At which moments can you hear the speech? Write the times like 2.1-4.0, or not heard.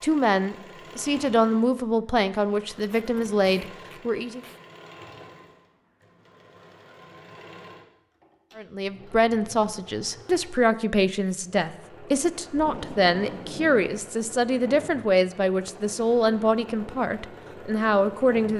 0.0-4.4, 8.6-18.5.